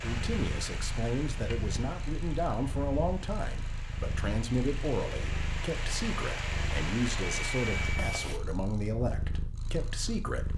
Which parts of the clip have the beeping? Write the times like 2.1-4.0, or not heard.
7.2-8.3.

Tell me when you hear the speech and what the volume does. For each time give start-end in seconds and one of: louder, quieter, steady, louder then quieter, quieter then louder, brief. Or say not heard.
0.0-10.5 steady.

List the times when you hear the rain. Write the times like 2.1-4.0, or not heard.
0.0-8.4.